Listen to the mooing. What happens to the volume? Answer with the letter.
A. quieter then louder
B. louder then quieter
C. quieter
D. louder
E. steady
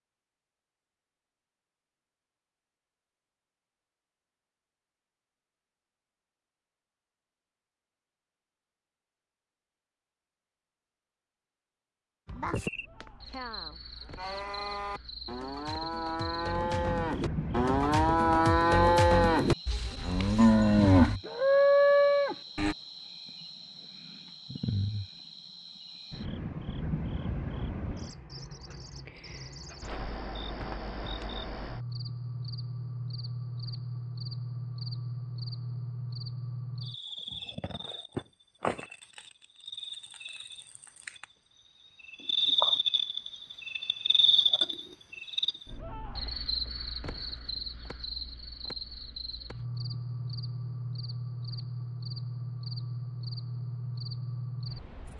D.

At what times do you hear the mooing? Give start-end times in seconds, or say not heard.
12.2-22.8.